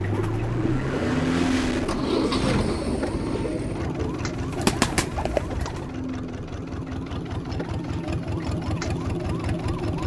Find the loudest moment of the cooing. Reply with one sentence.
The loudest moment of the cooing is at 5 seconds.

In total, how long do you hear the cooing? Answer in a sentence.
The cooing can be heard for 6 seconds in total.